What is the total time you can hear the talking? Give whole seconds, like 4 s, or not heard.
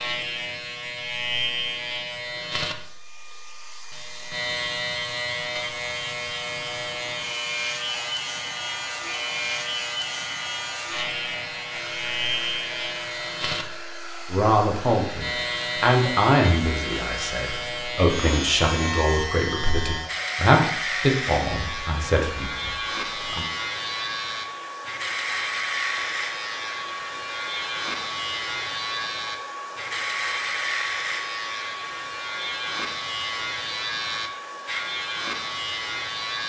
9 s.